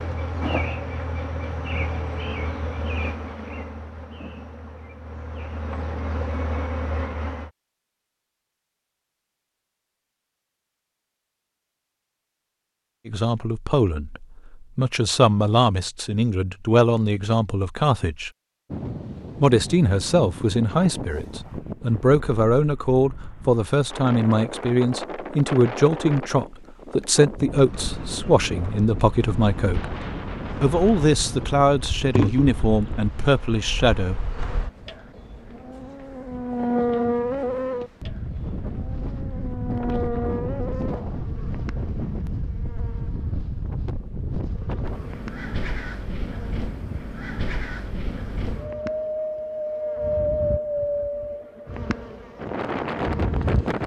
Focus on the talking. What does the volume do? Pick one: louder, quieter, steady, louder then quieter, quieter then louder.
steady.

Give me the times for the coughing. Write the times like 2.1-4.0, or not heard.
not heard.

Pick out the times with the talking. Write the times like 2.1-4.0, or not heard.
13.1-18.3, 19.4-29.9, 30.6-34.1.